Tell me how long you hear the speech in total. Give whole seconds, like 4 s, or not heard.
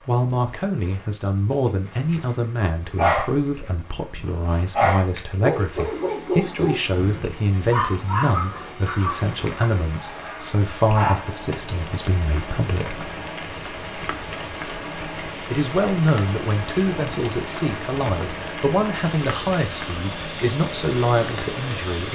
20 s.